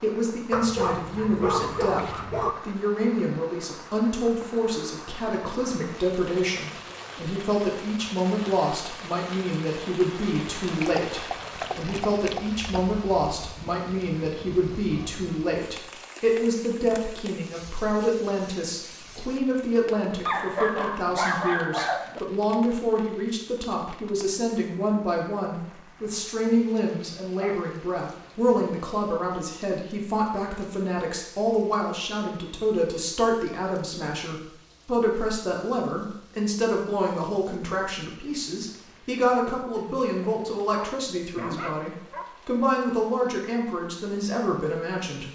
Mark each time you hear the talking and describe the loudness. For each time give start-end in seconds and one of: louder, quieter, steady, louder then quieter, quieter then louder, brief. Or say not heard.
0.0-45.2 steady.